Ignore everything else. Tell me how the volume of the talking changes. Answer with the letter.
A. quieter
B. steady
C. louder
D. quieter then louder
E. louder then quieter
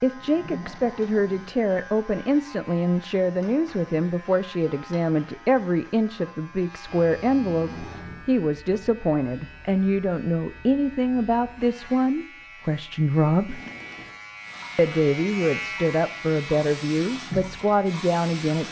B.